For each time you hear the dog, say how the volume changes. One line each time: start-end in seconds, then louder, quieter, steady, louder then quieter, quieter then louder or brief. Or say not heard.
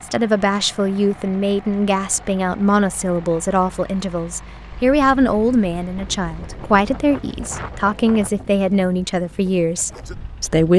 not heard.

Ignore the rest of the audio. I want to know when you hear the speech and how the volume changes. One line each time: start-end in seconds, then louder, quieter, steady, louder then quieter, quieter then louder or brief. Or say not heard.
0.0-10.7 steady.